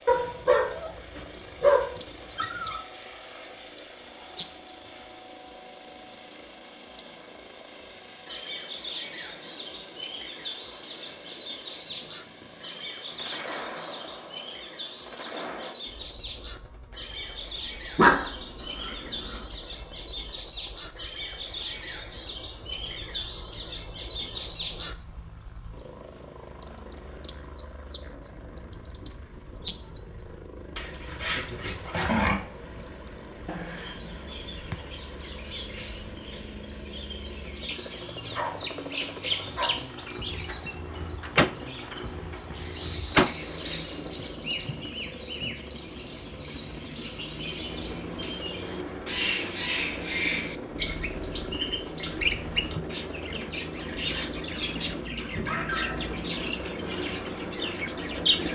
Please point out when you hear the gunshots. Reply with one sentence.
The gunshots can be heard from 11.8 to 15.8 s and from 40.3 to 43.4 s.